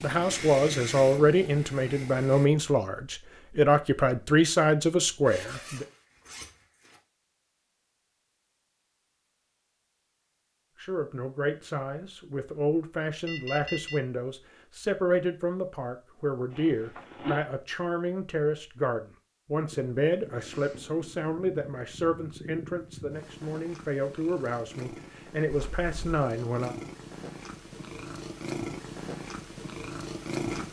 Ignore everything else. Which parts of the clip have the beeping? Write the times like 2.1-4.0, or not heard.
13.2-14.0.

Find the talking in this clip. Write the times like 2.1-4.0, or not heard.
0.0-5.8, 10.8-26.8.